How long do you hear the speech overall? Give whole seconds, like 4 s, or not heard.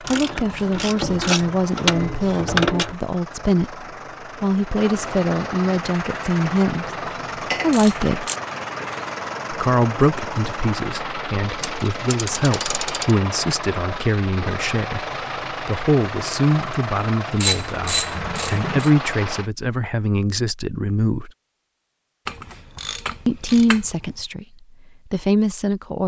22 s.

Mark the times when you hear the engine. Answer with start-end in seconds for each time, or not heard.
0.0-19.5.